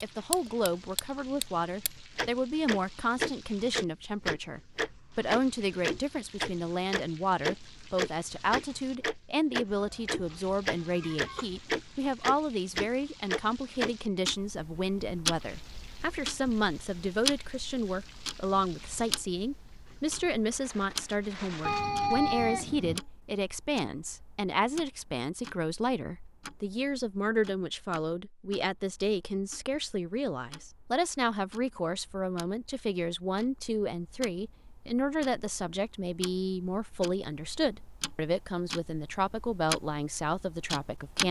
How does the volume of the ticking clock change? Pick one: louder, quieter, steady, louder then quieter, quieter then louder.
quieter then louder.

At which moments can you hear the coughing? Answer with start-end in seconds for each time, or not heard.
not heard.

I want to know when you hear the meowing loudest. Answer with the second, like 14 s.
22 s.